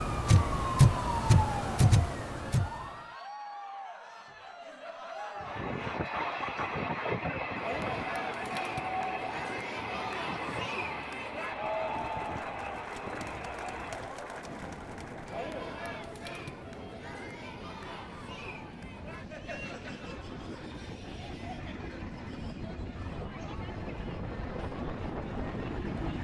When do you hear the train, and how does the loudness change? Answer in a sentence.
The train can be heard from 5.3 to 26.1 s, getting quieter then louder.